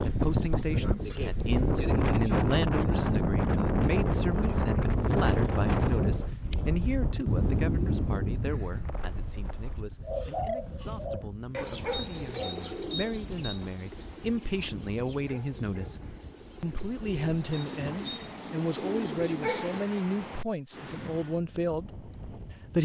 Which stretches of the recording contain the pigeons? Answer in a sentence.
You can hear the pigeons from 10.1 to 19.9 s.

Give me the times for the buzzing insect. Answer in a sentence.
You can't hear the buzzing insect here.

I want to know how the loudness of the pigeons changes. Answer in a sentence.
The loudness of the pigeons goes down, then up.